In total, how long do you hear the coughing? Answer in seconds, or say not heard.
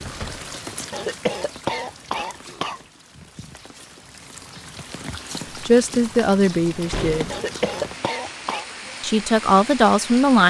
3 s.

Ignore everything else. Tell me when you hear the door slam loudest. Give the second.
7 s.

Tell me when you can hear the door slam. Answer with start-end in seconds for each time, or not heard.
0.1-0.5, 6.9-7.4.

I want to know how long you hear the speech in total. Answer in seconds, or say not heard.
3 s.